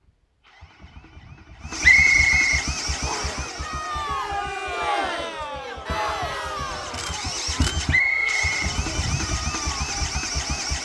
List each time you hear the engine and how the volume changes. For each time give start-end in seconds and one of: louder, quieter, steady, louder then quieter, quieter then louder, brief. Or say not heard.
0.0-10.7 quieter then louder.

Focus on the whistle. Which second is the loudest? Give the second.
2 s.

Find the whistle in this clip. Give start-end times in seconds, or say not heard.
1.8-3.4, 7.9-8.5.